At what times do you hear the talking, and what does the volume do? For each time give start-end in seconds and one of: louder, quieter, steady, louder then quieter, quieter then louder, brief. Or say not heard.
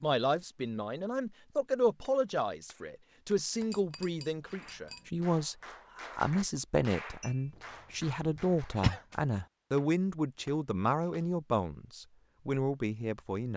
0.0-13.5 steady.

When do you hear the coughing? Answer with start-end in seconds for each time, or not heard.
8.3-9.0.